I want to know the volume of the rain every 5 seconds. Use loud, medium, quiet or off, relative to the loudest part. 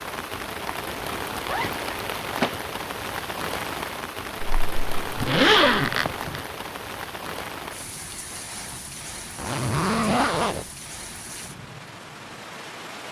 loud, loud, medium.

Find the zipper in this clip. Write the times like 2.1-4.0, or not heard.
1.4-2.5, 4.4-6.4, 9.3-10.7.